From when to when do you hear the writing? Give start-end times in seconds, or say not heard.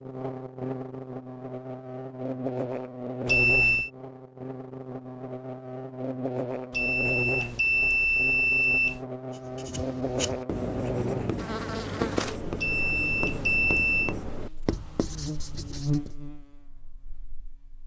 9.3-16.1.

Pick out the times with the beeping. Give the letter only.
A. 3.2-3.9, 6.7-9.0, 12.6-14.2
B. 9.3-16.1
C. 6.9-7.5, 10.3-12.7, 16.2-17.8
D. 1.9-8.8
A.